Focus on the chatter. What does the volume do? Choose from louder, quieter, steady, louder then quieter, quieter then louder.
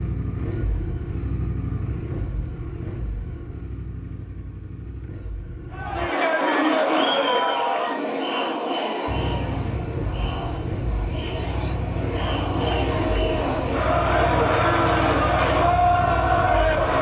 quieter then louder.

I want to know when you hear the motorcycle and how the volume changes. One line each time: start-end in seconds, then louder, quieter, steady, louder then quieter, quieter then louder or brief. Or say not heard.
0.0-6.1 quieter
9.1-16.9 steady.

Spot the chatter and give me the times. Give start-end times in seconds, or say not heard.
5.7-16.9.